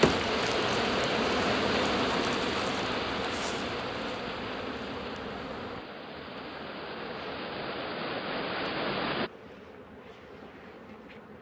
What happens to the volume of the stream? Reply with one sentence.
The loudness of the stream goes down, then up.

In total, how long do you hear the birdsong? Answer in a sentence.
You can't hear the birdsong here.